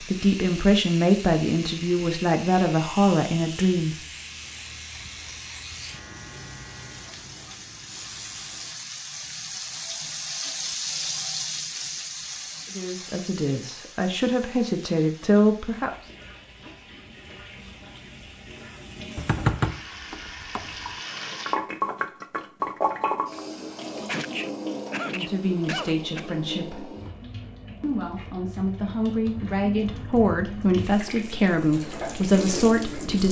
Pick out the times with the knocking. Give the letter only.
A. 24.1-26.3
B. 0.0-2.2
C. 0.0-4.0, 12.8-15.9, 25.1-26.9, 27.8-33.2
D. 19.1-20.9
D.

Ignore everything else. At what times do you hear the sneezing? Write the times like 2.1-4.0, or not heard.
24.1-26.3.